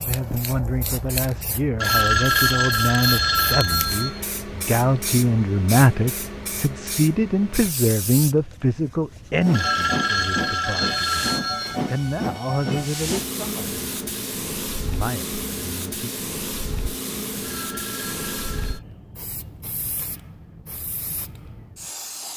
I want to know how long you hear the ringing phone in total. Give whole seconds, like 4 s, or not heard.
6 s.